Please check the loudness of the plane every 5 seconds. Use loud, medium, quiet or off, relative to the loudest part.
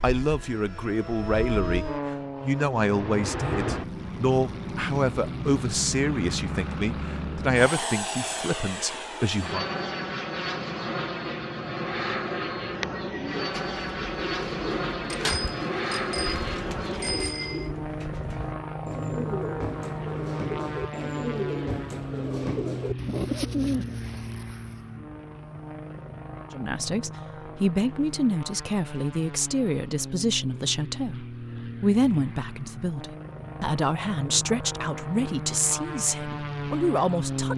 loud, loud, loud, loud, loud, medium, medium, loud.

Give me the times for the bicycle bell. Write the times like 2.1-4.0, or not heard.
15.1-17.7.